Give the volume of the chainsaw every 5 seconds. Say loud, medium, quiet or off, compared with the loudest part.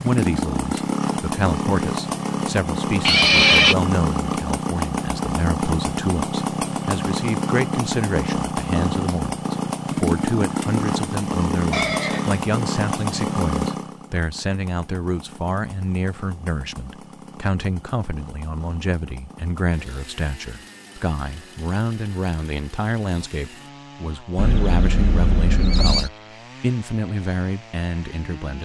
loud, loud, loud, quiet, quiet, quiet.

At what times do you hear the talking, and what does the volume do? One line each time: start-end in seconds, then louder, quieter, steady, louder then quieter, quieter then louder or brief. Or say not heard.
0.0-28.6 steady.